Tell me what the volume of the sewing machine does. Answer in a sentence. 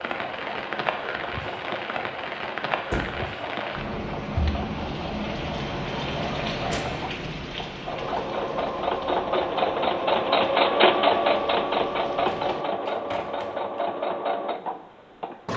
The volume of the sewing machine goes up, then down.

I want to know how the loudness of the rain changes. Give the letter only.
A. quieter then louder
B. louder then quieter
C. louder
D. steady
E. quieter
E.